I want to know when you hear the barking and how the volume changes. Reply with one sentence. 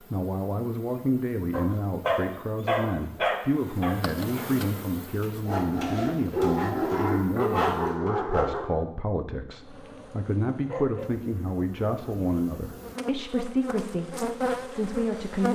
The barking can be heard from 1.5 to 8.8 s, getting quieter then louder.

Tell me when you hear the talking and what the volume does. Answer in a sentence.
The talking can be heard from 0.0 to 15.4 s, at a steady volume.